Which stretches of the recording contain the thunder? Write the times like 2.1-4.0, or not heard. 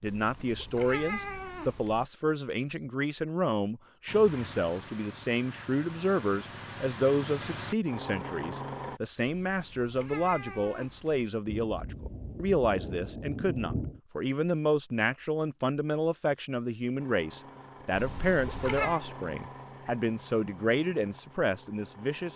11.4-14.0.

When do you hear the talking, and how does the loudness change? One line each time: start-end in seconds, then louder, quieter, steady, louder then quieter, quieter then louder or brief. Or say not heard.
0.0-22.3 steady.